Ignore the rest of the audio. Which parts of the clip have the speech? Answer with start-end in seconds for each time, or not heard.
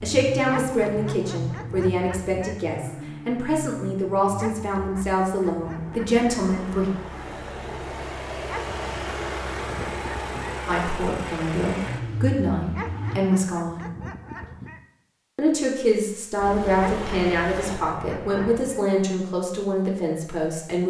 0.0-6.9, 10.7-13.9, 15.3-20.8.